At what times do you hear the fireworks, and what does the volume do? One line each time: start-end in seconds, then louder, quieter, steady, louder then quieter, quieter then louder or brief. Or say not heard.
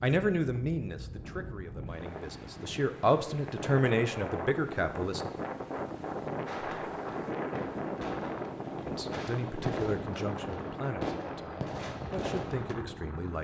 6.5-12.8 louder.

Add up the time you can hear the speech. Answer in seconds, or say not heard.
10 s.